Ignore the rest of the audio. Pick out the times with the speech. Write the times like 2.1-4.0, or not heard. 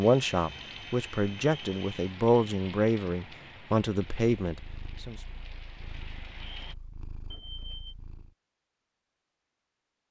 0.0-5.2.